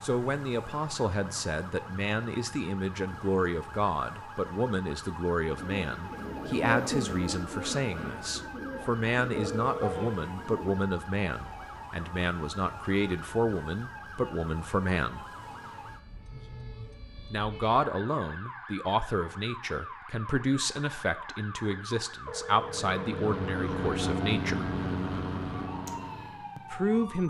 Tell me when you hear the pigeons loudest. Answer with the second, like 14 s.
7 s.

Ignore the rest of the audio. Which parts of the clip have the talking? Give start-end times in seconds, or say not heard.
0.0-15.2, 17.3-24.7, 26.6-27.2.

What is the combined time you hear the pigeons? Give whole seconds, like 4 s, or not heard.
5 s.